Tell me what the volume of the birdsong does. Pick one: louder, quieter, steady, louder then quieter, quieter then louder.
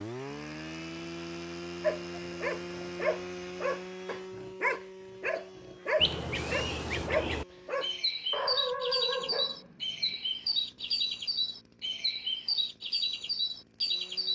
steady.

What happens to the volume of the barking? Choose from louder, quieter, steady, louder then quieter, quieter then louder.
steady.